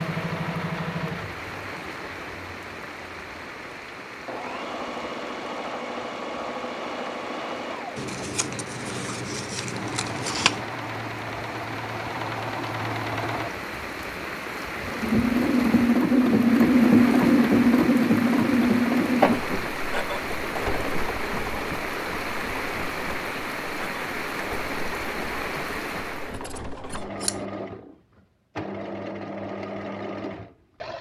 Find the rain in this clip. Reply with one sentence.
You can hear the rain from 0.0 to 26.4 s.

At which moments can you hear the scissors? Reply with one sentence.
The scissors can be heard from 8.0 to 10.7 s and from 26.3 to 27.4 s.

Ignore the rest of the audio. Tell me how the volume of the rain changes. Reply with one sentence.
The volume of the rain goes up.